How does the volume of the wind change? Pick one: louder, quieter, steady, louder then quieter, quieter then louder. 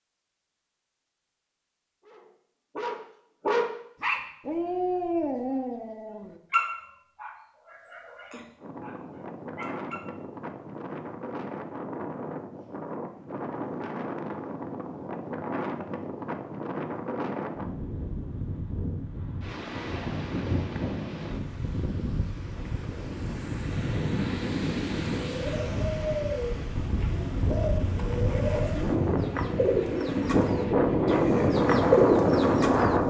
louder.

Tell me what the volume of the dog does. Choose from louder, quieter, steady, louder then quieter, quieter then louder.
quieter.